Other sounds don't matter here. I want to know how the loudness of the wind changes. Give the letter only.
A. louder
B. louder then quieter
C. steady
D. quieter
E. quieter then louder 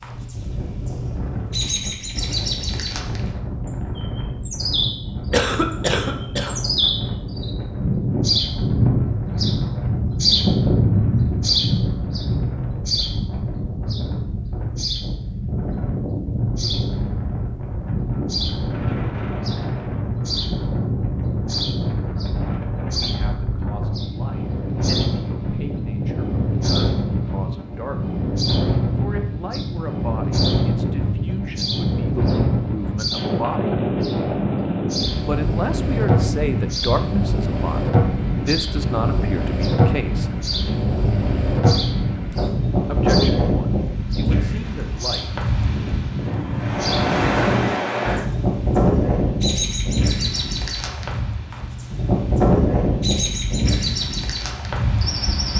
A.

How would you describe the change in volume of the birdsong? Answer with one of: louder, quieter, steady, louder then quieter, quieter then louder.
quieter.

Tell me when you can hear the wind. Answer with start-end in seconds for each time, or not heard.
0.0-55.5.